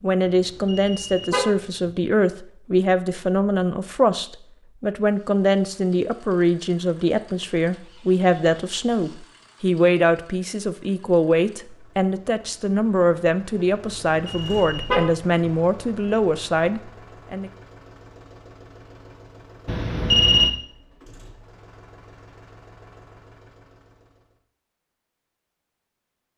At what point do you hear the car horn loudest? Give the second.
20 s.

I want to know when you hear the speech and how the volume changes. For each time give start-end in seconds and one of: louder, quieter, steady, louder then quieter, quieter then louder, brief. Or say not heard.
0.0-17.5 steady.